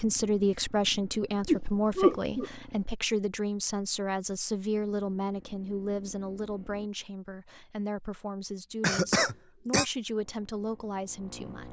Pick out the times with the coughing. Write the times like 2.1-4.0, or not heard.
1.4-2.5, 8.8-9.8.